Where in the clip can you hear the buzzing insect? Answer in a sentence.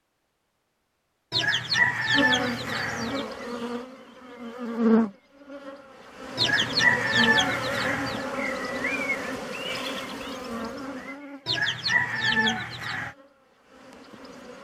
You can hear the buzzing insect from 2.1 to 14.6 s.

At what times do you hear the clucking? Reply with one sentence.
The clucking can be heard from 1.3 to 3.2 s, from 6.3 to 8.2 s and from 11.4 to 13.2 s.